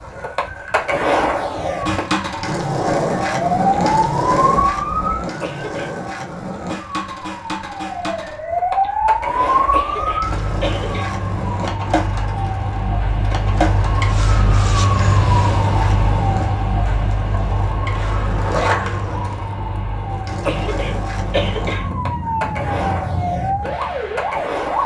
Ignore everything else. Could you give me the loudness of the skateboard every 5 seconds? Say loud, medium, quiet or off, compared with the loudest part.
loud, medium, medium, medium, medium.